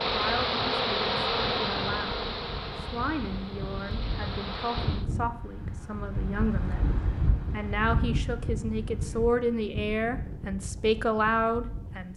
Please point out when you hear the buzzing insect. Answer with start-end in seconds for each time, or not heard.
0.0-5.0.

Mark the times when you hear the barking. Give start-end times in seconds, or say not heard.
not heard.